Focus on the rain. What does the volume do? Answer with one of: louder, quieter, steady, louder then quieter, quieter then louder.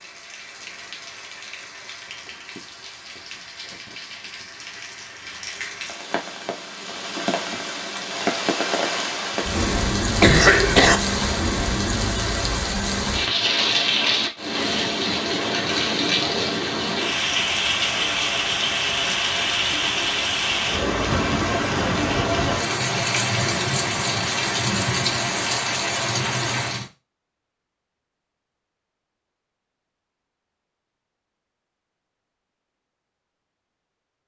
louder.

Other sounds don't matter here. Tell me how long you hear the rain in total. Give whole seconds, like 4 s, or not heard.
27 s.